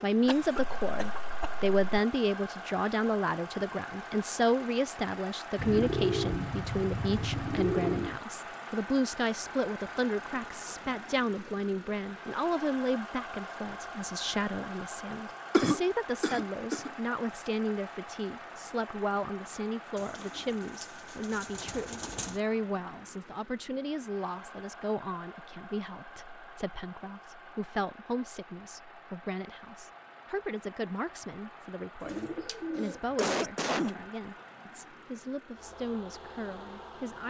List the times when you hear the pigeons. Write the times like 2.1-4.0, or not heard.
5.5-8.2, 19.9-22.4, 32.0-33.1.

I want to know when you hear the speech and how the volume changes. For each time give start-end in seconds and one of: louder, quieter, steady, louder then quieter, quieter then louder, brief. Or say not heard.
0.0-37.2 quieter.